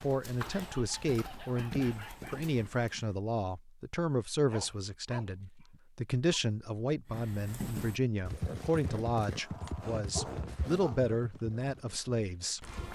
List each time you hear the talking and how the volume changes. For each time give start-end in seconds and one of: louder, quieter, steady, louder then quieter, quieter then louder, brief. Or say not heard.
0.0-12.7 steady.